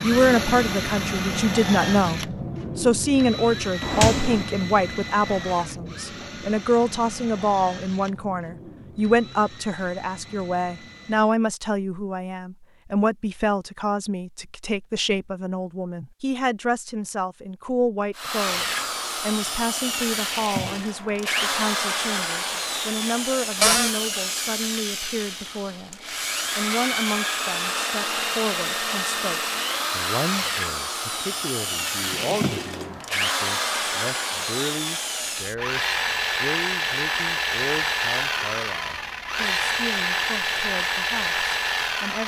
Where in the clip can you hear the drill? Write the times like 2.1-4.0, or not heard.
0.0-11.3, 18.1-42.2.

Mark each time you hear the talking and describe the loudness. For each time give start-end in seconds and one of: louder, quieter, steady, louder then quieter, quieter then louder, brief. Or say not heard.
0.0-42.2 quieter.